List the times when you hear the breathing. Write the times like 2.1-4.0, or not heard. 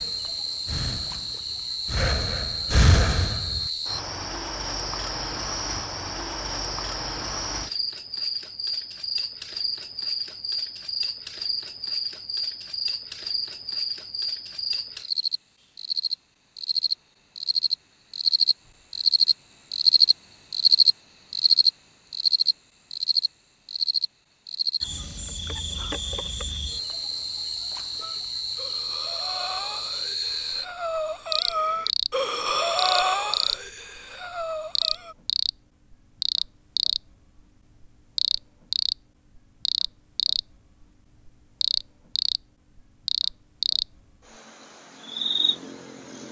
0.0-3.7, 28.0-35.1.